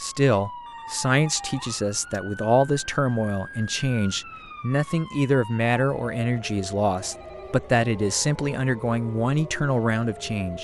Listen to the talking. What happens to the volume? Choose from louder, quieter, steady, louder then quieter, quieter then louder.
steady.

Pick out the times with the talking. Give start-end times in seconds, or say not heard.
0.0-10.5.